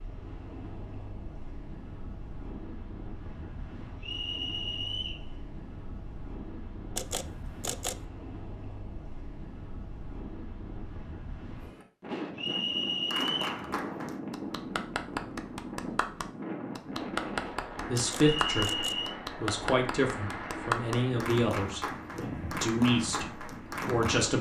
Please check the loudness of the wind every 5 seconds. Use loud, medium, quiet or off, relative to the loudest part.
medium, medium, loud, loud, loud.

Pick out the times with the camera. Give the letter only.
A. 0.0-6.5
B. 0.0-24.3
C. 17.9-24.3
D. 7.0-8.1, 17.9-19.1
D.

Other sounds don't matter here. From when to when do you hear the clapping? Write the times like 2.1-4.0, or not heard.
13.1-24.3.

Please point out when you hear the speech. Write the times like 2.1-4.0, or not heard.
17.9-24.3.